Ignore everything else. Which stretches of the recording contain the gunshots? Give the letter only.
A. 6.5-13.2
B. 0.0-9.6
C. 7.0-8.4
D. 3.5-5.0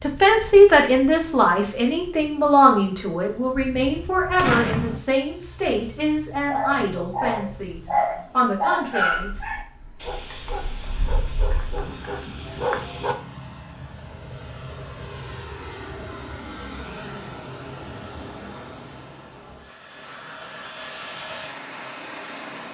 D.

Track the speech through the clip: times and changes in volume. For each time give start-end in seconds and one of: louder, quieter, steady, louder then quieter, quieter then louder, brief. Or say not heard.
0.0-9.6 quieter.